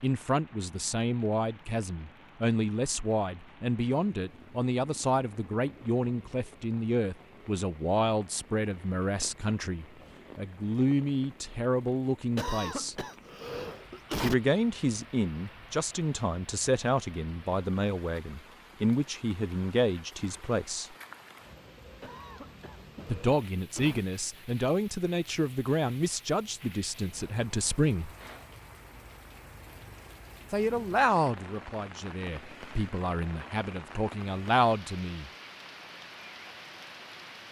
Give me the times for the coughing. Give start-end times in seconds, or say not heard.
12.3-14.3, 22.0-24.0.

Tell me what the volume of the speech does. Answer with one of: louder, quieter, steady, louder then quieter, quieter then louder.
steady.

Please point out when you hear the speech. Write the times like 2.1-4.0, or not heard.
0.0-13.1, 14.2-20.9, 23.1-28.1, 30.5-35.3.